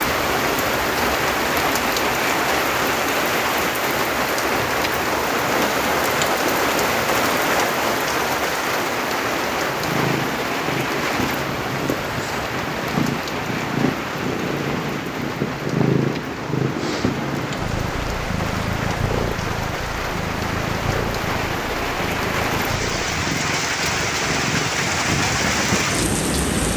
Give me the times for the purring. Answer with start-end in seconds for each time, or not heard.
9.6-24.9.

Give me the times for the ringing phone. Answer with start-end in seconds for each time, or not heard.
not heard.